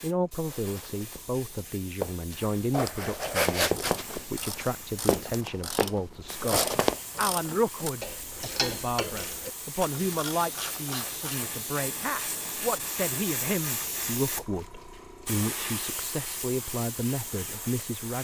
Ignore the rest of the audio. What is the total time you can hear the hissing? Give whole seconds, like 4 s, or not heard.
18 s.